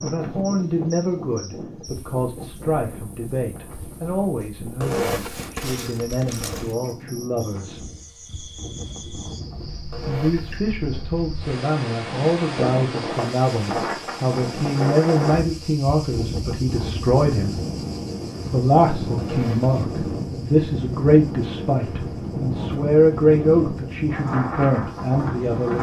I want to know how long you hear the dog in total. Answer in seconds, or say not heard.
not heard.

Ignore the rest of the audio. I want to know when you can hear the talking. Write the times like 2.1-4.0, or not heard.
0.0-7.9, 10.1-17.6, 18.5-25.7.